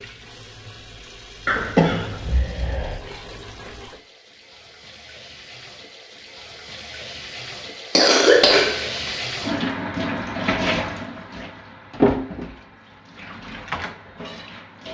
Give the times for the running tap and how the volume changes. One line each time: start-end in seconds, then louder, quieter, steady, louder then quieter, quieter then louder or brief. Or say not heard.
0.0-14.8 louder.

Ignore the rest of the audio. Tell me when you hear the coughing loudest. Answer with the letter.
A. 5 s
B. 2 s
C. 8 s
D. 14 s
C.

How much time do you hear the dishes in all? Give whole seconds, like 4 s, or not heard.
not heard.